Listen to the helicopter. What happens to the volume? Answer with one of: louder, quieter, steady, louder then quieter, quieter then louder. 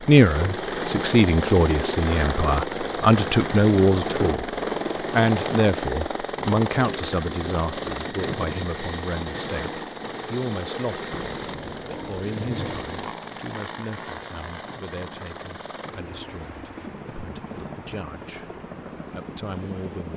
quieter.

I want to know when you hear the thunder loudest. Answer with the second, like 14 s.
13 s.